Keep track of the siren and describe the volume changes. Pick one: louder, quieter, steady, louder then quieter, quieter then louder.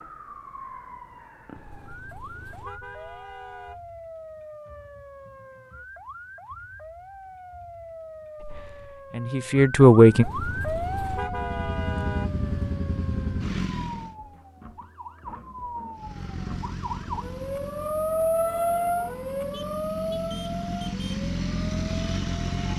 louder.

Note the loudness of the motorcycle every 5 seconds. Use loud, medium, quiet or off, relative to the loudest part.
off, off, loud, medium, loud.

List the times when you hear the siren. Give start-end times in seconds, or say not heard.
0.0-22.7.